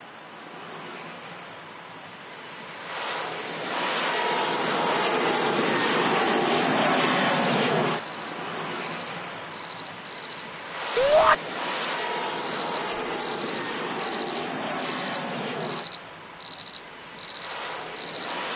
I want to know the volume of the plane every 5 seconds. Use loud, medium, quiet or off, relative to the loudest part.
medium, loud, medium, medium.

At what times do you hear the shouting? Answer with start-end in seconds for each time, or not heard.
10.9-11.3.